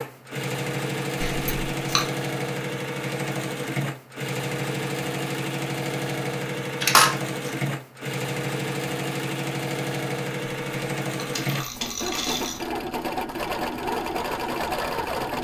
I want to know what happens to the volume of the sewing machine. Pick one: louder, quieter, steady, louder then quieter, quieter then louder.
steady.